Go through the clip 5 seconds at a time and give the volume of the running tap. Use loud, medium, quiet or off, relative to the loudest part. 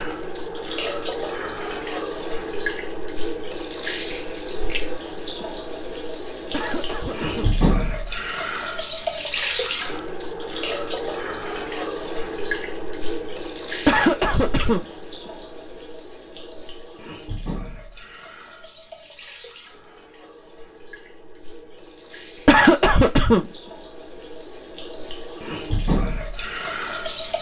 loud, loud, loud, quiet, quiet, loud.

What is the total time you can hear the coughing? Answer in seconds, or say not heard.
3 s.